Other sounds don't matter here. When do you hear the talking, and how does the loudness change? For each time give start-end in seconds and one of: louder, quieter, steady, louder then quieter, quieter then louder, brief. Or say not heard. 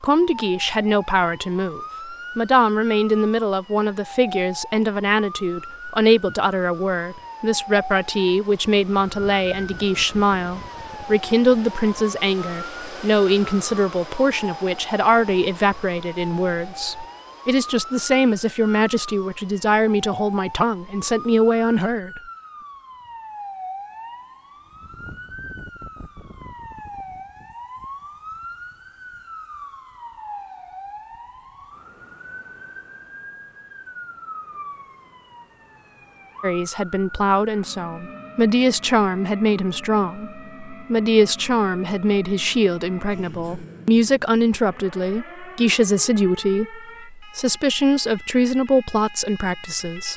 0.0-22.2 steady
36.4-50.1 steady.